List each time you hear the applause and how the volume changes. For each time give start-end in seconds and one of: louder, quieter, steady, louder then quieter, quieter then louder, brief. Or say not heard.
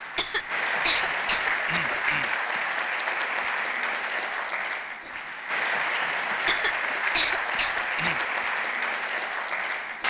0.0-10.0 steady.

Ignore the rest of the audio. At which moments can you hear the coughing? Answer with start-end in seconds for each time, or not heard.
0.1-2.3, 6.5-8.2.